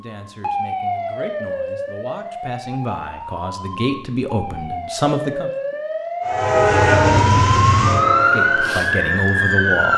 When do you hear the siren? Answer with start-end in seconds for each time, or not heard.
0.2-9.9.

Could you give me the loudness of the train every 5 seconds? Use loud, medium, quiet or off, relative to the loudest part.
off, loud.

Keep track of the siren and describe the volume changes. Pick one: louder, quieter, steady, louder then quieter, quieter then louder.
quieter then louder.